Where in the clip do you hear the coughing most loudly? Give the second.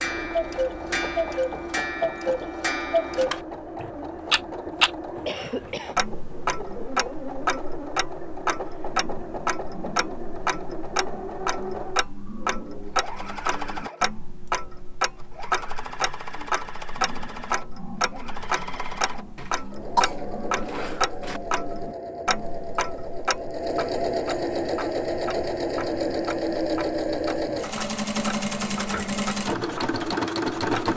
20 s.